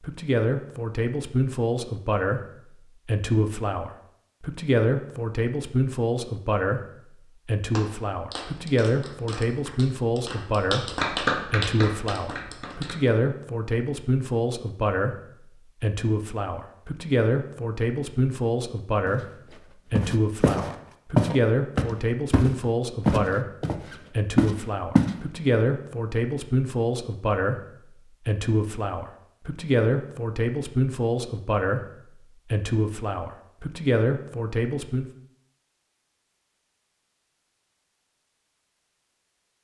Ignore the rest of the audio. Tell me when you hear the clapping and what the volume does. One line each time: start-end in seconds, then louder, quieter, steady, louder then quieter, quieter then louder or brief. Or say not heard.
7.7-13.1 louder then quieter.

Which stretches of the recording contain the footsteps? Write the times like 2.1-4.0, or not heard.
19.9-25.1.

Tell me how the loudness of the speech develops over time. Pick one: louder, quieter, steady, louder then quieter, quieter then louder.
steady.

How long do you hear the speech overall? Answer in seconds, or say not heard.
35 s.